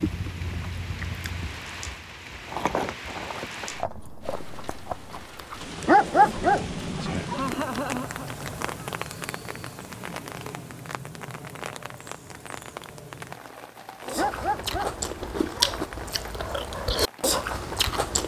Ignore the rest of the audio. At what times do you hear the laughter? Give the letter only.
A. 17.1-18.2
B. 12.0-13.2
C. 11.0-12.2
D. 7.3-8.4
D.